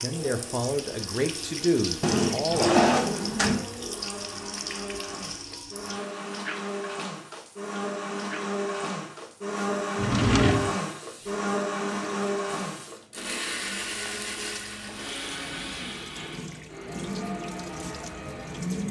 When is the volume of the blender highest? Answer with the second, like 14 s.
10 s.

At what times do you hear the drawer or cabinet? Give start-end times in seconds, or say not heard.
2.0-3.6, 9.9-10.8, 14.2-15.8.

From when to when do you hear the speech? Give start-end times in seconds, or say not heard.
0.0-2.8.